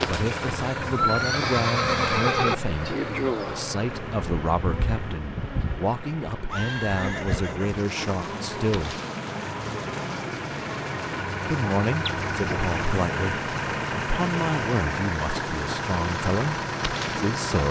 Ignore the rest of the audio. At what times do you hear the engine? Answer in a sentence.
The engine can be heard from 0.0 to 17.6 s.